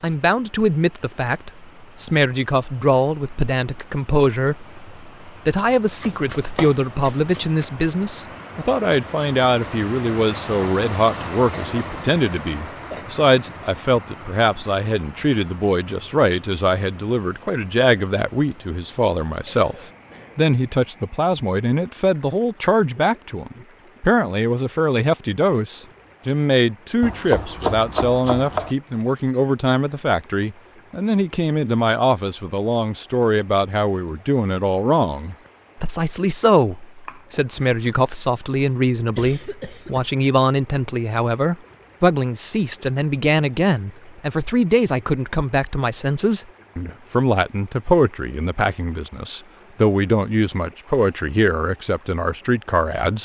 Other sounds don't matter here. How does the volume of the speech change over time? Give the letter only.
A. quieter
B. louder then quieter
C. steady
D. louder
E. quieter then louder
C.